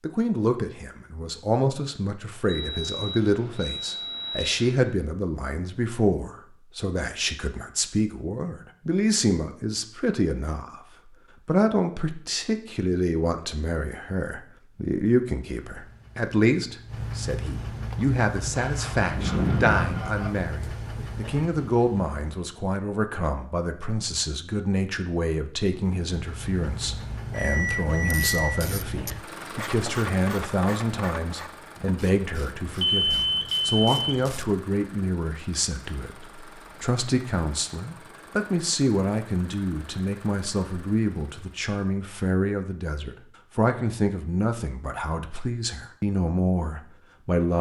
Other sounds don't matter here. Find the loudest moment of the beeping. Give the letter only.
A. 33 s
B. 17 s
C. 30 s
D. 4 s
A.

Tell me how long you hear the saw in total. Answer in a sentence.
You can hear the saw for 2 seconds altogether.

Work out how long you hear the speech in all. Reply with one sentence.
The speech can be heard for 47 seconds in total.